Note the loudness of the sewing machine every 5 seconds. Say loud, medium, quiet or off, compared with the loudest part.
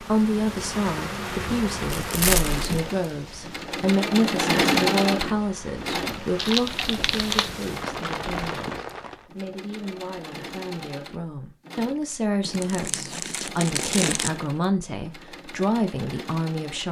loud, medium, quiet, quiet.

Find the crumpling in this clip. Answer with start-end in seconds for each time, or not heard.
1.9-2.9, 6.3-7.5, 12.4-14.3.